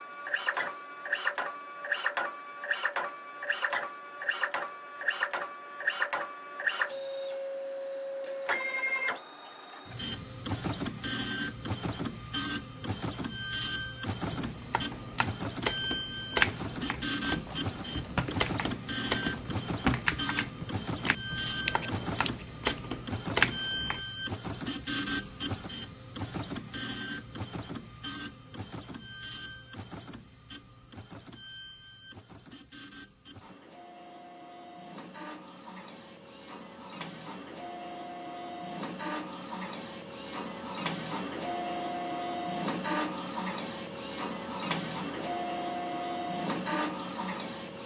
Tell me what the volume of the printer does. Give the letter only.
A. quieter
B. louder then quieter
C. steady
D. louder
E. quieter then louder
E.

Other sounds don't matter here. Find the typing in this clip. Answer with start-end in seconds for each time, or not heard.
14.3-24.0.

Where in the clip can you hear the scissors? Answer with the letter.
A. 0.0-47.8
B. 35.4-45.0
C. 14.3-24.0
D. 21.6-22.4
D.